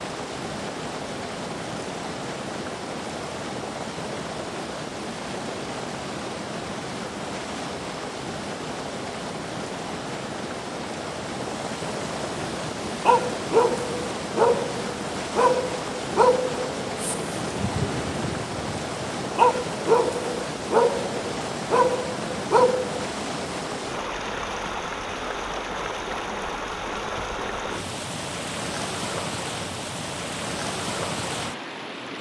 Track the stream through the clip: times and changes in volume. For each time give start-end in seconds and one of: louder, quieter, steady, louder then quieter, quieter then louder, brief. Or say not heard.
0.0-32.1 steady.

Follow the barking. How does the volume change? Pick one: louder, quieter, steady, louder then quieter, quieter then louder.
quieter then louder.